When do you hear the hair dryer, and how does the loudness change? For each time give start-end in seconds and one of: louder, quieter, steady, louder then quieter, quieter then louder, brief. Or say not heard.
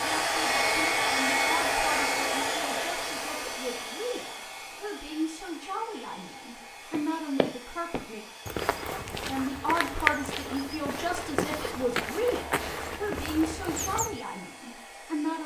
0.0-15.4 quieter.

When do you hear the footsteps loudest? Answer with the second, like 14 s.
10 s.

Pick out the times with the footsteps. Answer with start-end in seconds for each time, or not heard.
6.9-14.2.